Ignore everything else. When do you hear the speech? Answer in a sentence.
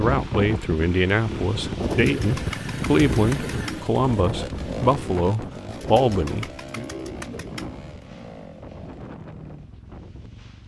You can hear the speech from 0.0 to 6.8 s.